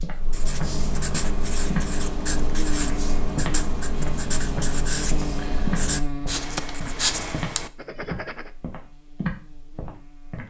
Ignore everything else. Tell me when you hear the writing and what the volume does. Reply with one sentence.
The writing can be heard from 0.2 to 8.5 s, at a steady volume.